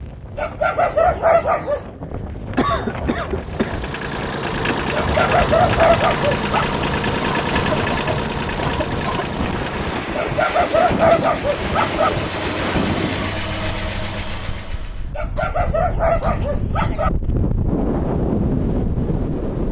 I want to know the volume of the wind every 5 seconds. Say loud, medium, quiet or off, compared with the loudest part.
medium, loud, loud, loud.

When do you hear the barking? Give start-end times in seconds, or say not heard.
0.3-1.8, 5.0-6.7, 10.2-12.1, 15.2-17.1.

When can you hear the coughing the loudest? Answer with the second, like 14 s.
3 s.